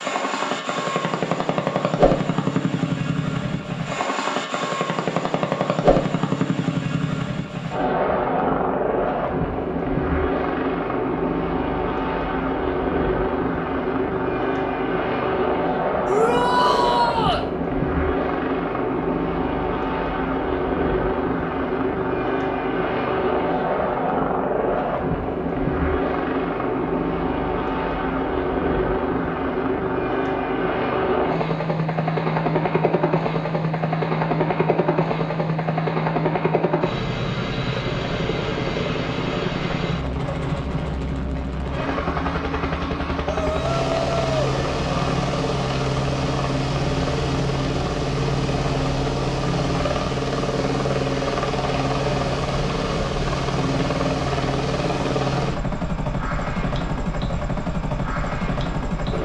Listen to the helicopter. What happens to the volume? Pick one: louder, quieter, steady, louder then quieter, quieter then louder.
steady.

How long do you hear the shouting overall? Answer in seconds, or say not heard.
3 s.